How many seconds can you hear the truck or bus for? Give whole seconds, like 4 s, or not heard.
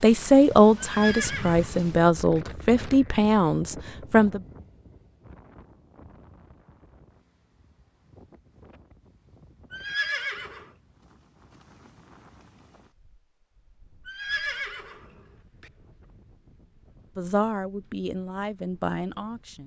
not heard.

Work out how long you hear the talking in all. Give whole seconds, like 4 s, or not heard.
7 s.